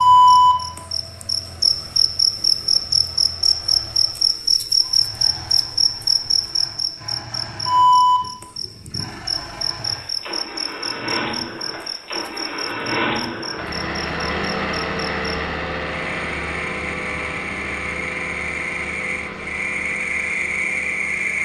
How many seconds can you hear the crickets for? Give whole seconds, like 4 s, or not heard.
21 s.